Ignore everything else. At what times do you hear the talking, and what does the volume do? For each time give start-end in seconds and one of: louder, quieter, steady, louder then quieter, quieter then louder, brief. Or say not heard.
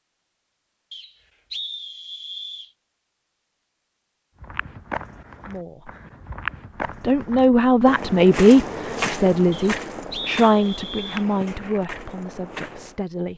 5.5-5.9 brief
7.0-13.3 quieter.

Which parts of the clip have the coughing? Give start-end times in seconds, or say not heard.
not heard.